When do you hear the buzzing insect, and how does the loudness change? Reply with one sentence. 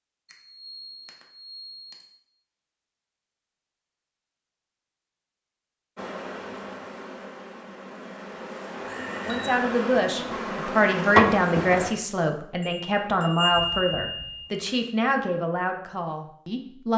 You can hear the buzzing insect from 6.0 to 11.9 s, getting louder.